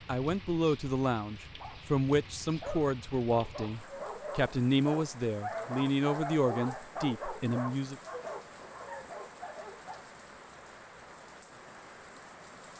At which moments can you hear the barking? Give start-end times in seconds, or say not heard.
1.6-10.2.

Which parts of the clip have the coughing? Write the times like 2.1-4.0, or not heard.
not heard.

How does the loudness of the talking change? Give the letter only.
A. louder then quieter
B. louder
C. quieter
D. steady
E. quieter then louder
D.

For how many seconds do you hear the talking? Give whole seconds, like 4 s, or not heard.
8 s.